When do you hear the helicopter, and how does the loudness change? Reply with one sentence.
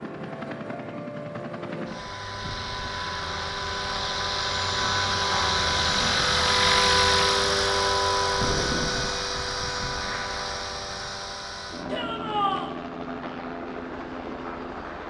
You can hear the helicopter from 0.0 to 15.0 s, getting louder then quieter.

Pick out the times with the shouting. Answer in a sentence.
You can hear the shouting from 11.8 to 12.7 s.